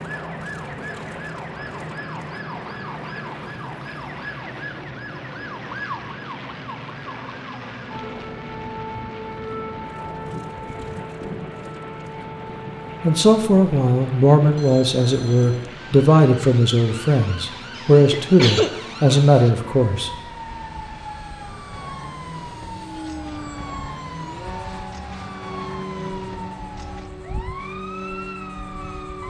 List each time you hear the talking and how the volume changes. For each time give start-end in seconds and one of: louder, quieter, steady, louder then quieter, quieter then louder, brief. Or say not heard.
13.0-20.1 steady.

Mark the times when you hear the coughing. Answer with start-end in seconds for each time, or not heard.
17.8-18.8.